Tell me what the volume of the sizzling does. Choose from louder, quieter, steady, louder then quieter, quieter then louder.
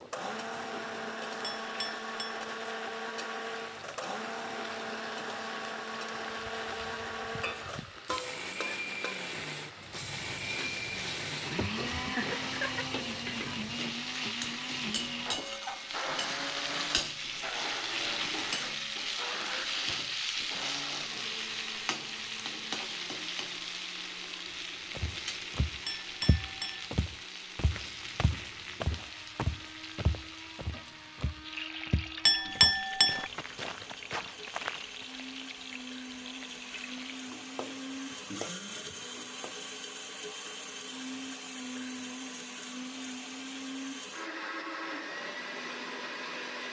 louder then quieter.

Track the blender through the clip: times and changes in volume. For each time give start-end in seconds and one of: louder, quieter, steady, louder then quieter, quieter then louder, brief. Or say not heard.
0.0-46.6 quieter then louder.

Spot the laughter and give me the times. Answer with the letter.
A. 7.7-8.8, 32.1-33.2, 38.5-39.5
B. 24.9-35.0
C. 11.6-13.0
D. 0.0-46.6
C.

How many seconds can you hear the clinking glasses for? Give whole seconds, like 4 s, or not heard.
3 s.